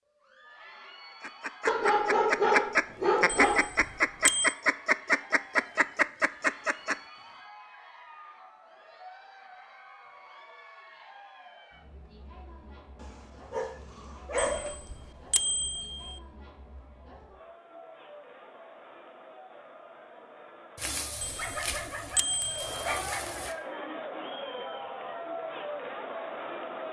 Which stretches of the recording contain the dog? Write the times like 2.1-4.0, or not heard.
1.6-3.6, 13.0-14.8, 20.8-23.6.